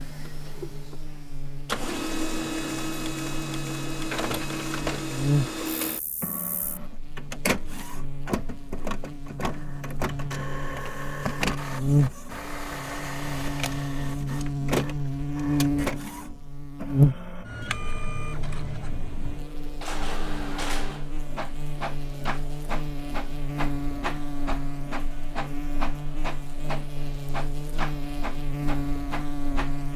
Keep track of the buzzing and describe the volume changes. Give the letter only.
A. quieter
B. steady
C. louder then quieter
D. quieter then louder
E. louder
C.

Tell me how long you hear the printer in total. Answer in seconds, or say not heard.
30 s.